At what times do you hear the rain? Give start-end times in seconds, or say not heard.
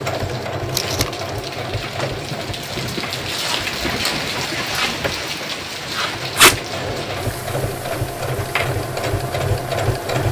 0.0-10.1.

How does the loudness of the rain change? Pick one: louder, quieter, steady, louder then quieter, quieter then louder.
louder then quieter.